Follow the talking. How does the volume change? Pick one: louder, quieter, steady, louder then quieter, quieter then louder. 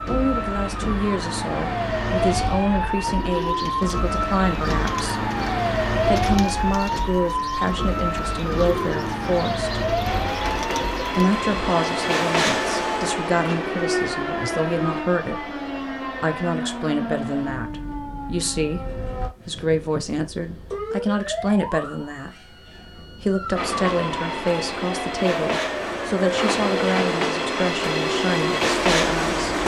steady.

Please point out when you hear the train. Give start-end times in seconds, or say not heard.
10.0-15.1, 23.6-29.6.